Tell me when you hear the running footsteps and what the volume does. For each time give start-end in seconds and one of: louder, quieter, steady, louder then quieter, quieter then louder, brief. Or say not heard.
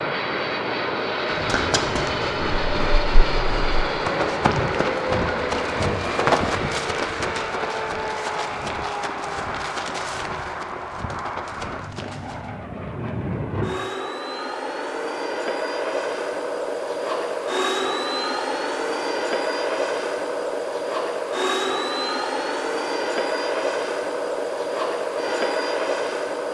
1.2-12.5 louder then quieter.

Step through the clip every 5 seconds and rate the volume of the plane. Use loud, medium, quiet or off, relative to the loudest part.
loud, loud, medium, loud, loud, loud.